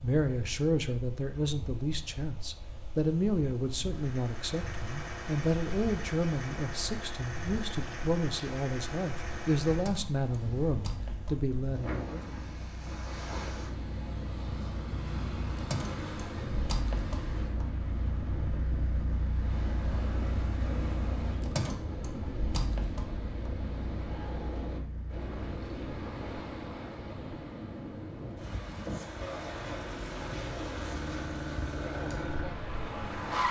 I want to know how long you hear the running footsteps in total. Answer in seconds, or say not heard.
not heard.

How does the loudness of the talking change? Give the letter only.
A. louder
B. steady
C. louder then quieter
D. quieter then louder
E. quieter
B.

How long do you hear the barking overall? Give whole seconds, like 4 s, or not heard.
not heard.